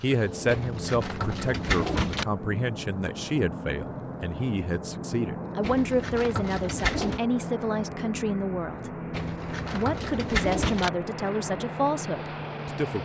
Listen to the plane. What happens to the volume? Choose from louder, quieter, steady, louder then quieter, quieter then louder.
steady.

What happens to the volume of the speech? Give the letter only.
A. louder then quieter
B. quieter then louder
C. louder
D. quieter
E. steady
E.